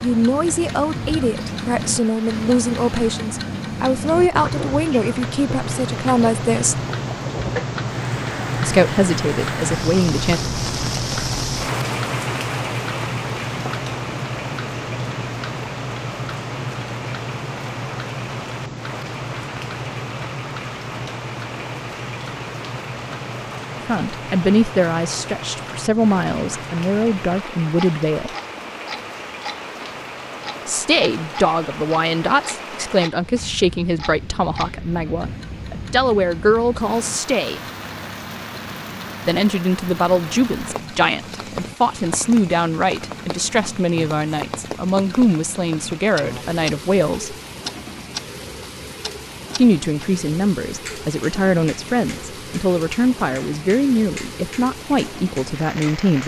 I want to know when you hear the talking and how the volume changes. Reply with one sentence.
The talking can be heard from 0.0 to 6.8 s, at a steady volume; briefly from 8.6 to 10.4 s; from 23.9 to 28.4 s, getting quieter then louder; from 30.6 to 37.6 s, getting quieter then louder; from 39.2 to 47.4 s, at a steady volume; and from 49.5 to 56.2 s, at a steady volume.